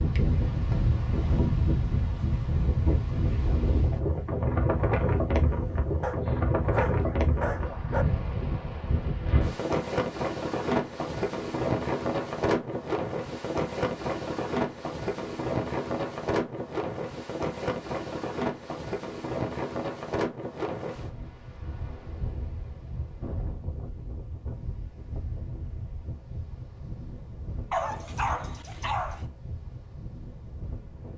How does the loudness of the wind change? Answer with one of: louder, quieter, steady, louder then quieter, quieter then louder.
quieter.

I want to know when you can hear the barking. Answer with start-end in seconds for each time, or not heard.
6.0-8.1, 27.7-29.2.